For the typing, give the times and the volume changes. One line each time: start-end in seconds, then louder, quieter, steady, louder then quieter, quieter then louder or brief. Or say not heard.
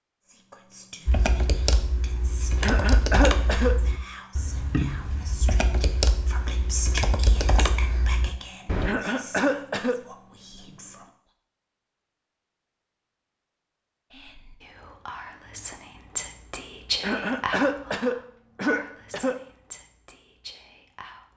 1.1-8.9 steady.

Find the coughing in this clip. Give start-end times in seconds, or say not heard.
2.6-3.8, 8.8-9.9, 17.0-19.4.